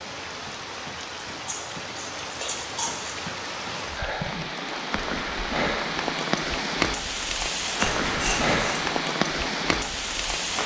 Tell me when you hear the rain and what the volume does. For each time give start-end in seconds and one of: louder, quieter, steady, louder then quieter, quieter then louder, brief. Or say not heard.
0.0-10.6 louder.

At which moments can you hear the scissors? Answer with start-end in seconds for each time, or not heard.
1.4-3.1, 7.8-8.8.